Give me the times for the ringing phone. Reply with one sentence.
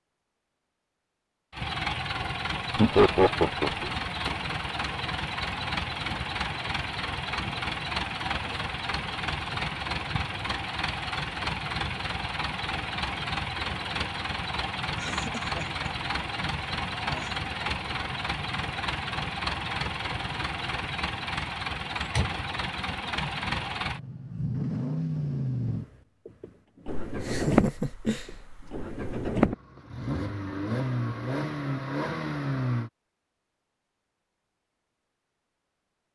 You can't hear the ringing phone here.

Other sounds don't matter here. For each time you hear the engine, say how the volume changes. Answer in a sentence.
You can hear the engine from 1.5 to 32.9 s, at a steady volume.